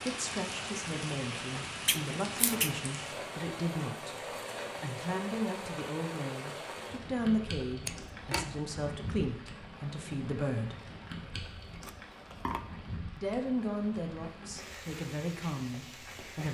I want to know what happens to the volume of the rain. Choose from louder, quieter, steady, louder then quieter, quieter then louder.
quieter.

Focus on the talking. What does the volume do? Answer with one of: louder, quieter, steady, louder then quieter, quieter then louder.
steady.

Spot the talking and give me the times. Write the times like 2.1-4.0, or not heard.
0.0-4.2, 4.8-10.8, 13.2-16.5.